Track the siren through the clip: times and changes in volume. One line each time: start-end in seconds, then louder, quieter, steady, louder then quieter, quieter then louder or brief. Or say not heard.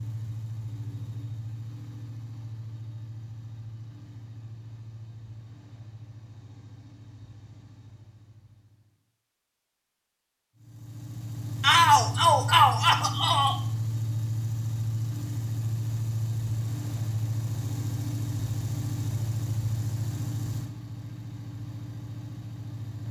not heard.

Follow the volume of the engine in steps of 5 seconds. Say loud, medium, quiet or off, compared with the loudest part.
medium, quiet, loud, loud, medium.